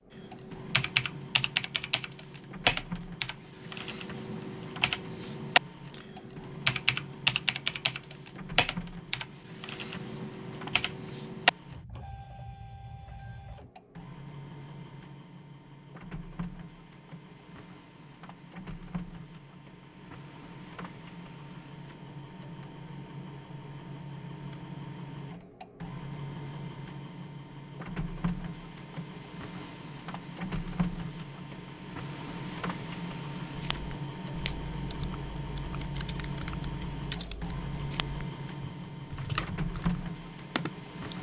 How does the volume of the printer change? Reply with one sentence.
The loudness of the printer goes up.